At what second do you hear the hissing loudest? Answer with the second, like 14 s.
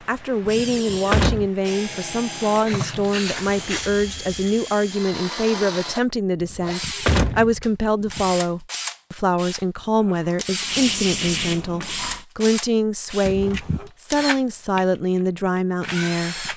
11 s.